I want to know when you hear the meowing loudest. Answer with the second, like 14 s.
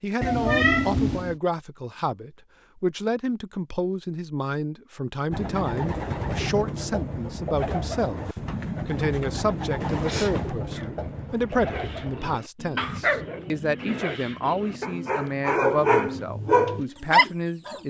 1 s.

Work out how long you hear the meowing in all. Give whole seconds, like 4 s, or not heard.
2 s.